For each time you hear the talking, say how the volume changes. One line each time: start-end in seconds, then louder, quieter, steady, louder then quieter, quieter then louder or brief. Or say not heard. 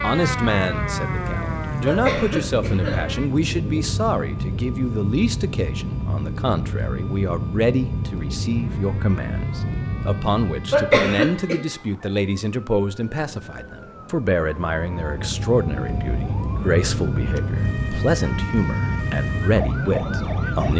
0.0-20.7 steady.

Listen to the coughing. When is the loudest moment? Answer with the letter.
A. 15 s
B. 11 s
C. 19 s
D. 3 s
B.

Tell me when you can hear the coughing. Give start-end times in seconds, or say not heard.
1.9-3.9, 10.7-11.6.